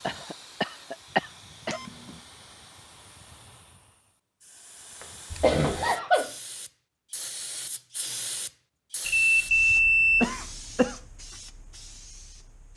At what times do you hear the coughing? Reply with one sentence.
The coughing can be heard from 0.1 to 1.8 s, from 5.0 to 6.3 s and from 9.7 to 10.9 s.